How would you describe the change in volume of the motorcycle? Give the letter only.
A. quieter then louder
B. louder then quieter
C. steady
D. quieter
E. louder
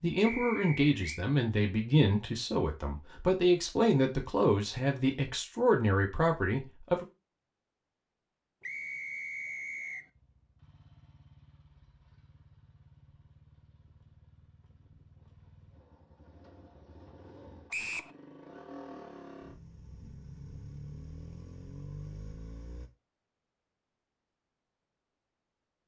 E.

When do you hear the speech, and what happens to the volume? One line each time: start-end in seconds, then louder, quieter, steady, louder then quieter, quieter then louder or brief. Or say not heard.
0.0-7.0 steady.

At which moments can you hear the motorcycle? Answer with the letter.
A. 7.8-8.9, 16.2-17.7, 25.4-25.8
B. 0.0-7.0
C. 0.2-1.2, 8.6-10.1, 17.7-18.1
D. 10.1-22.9
D.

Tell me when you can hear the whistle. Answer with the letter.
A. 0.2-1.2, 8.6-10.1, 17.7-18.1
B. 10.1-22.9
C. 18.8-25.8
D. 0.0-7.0
A.